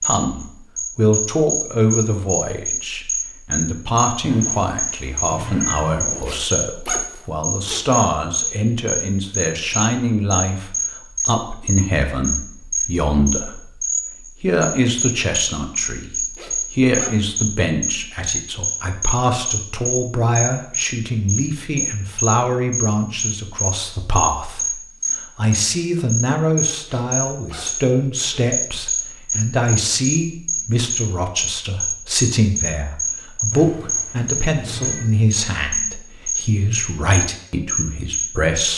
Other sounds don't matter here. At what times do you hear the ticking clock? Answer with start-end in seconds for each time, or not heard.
not heard.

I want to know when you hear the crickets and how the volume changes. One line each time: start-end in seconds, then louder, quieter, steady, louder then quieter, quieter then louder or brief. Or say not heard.
0.0-38.7 steady.